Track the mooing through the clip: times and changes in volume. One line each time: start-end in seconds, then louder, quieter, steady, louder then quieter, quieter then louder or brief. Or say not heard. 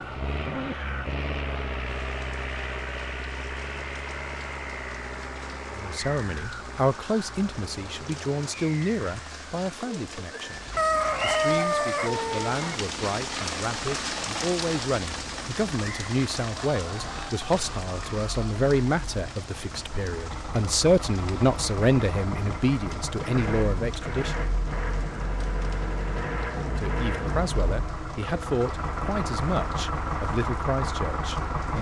not heard.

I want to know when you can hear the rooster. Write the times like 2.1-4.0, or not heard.
10.8-12.8, 16.6-18.6.